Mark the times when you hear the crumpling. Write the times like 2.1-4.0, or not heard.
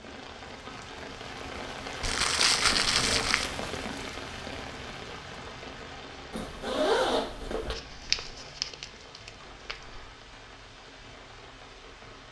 2.0-3.5, 7.8-10.1.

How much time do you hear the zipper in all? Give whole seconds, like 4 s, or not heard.
2 s.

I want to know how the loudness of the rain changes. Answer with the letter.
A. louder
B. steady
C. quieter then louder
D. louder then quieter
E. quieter
E.